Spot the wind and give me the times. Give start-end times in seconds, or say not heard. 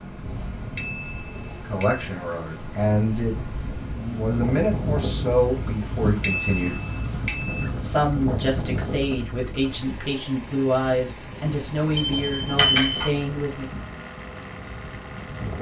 0.0-15.5.